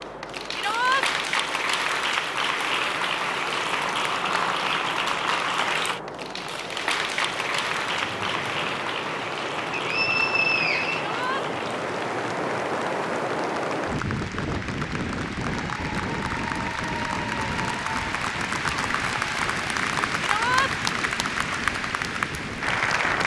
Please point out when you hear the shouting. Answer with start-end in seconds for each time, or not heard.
0.5-1.1, 11.0-11.4, 20.2-20.7.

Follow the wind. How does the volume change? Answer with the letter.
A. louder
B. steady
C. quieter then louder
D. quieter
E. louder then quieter
E.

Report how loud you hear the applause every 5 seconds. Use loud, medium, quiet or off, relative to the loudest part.
loud, loud, medium, loud, loud.